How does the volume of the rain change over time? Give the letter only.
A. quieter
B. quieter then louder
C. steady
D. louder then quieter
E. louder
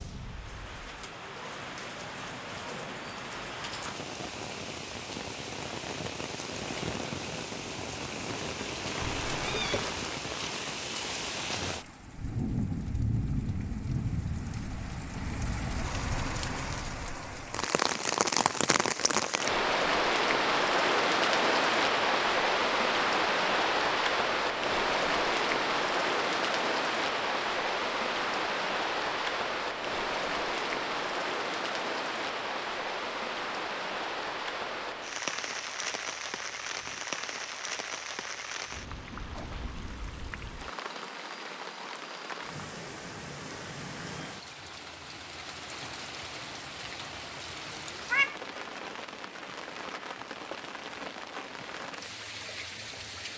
D.